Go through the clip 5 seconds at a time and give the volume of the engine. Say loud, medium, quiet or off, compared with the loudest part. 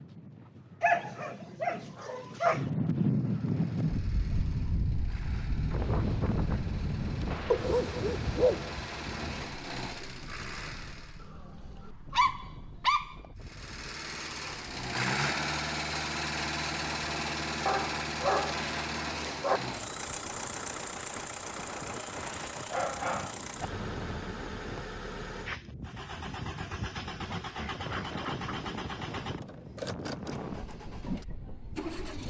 quiet, medium, medium, loud, medium, medium, medium.